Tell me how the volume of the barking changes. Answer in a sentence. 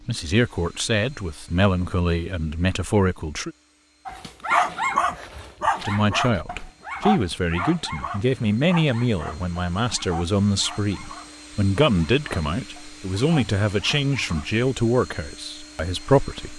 The volume of the barking goes down.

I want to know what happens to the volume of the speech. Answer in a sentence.
The loudness of the speech stays about the same.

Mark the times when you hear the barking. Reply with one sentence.
You can hear the barking from 4.0 to 14.7 s.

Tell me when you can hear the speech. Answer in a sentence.
The speech can be heard from 0.1 to 3.5 s and from 5.8 to 16.5 s.